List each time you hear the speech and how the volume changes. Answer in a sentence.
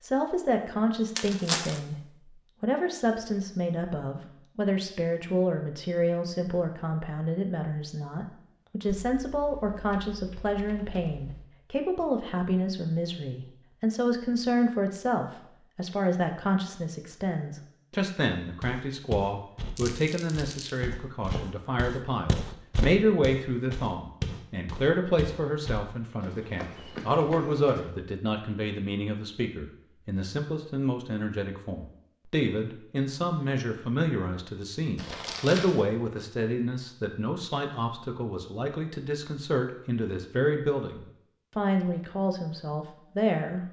You can hear the speech briefly from 0.0 to 1.9 s; and from 2.6 to 43.6 s, at a steady volume.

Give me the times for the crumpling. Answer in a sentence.
The crumpling can be heard from 1.1 to 1.8 s, from 19.8 to 20.8 s and from 35.0 to 35.9 s.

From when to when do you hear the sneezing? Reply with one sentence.
The sneezing can't be heard in this clip.